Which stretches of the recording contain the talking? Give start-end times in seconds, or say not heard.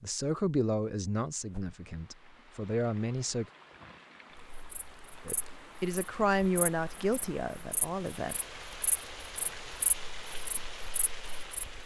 0.0-3.5, 5.2-8.3.